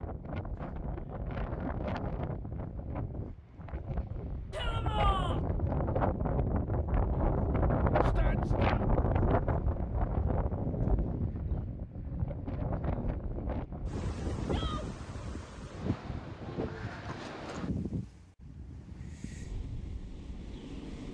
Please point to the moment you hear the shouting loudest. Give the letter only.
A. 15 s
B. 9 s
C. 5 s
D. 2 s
C.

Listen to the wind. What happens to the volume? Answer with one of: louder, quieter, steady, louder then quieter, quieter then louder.
louder then quieter.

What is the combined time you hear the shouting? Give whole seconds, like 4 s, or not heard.
2 s.